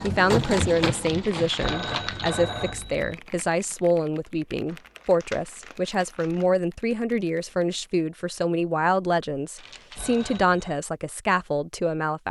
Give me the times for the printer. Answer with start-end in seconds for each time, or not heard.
0.0-2.4.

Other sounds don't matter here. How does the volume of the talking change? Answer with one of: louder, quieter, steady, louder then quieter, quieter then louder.
steady.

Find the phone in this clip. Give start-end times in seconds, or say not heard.
1.6-3.1, 9.9-10.8.